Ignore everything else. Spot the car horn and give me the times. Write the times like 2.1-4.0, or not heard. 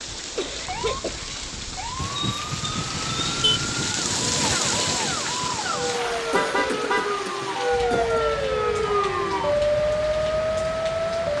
1.9-3.6, 6.3-7.2.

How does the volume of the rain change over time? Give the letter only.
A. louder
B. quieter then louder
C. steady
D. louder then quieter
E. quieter
D.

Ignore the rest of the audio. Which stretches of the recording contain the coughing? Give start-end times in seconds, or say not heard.
0.3-1.2, 6.3-8.2.